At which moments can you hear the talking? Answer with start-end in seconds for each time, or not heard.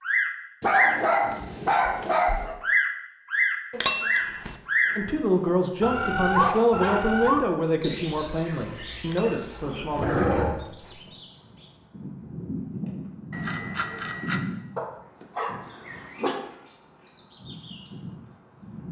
5.0-10.5.